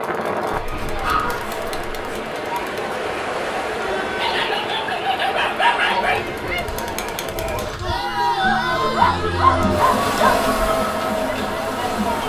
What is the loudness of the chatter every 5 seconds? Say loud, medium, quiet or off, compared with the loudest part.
medium, loud, loud.